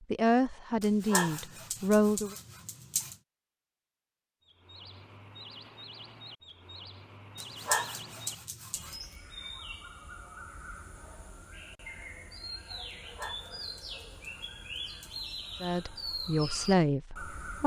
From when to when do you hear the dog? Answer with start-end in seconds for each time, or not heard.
0.8-3.1, 7.3-8.9, 12.8-15.3.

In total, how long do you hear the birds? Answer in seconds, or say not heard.
13 s.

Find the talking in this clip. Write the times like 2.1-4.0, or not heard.
0.1-2.4, 15.6-17.6.